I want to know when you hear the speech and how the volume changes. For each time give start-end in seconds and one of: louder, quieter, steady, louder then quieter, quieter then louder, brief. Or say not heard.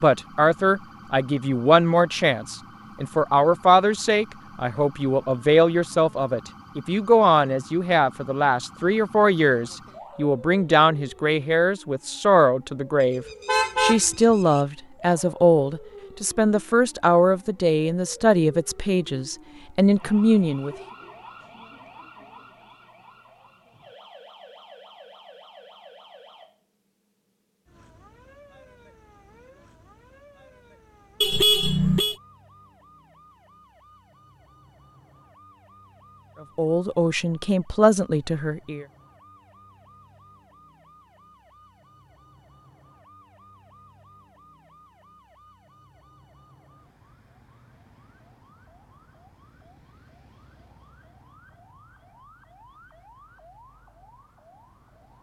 0.0-20.8 steady
36.5-38.9 brief.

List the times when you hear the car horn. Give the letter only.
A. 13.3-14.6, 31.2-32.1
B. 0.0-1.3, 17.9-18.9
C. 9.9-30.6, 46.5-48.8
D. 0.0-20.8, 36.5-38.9
A.